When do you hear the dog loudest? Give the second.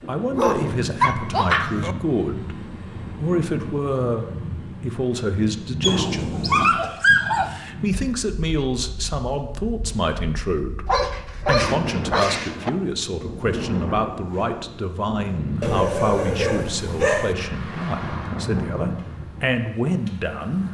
7 s.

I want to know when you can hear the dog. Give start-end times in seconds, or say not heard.
0.3-1.9, 5.8-7.5, 10.8-12.7, 15.6-17.4.